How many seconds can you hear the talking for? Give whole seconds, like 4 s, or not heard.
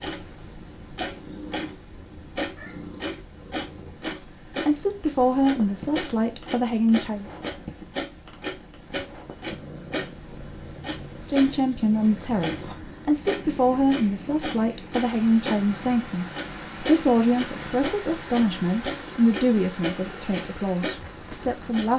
14 s.